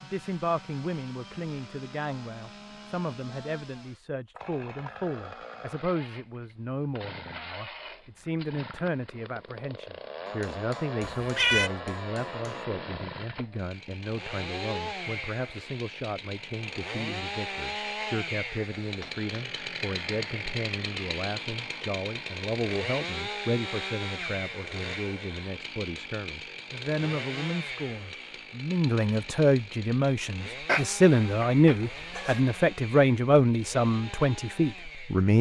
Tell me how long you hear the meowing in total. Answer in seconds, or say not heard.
2 s.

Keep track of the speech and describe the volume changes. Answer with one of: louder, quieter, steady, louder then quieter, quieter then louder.
louder.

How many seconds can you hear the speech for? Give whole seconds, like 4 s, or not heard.
35 s.